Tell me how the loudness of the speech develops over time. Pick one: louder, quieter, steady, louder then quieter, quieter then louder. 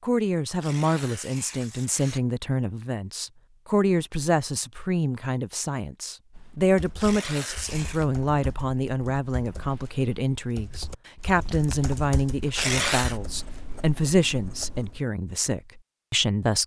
steady.